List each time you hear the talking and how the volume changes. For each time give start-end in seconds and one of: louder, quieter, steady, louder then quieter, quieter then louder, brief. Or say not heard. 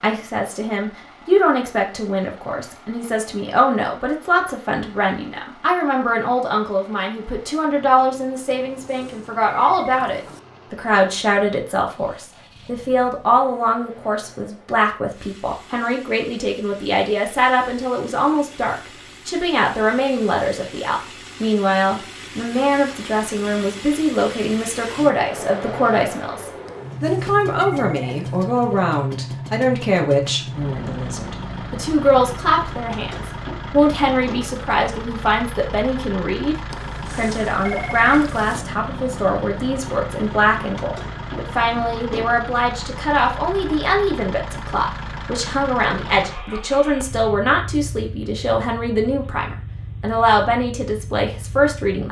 0.0-52.0 steady.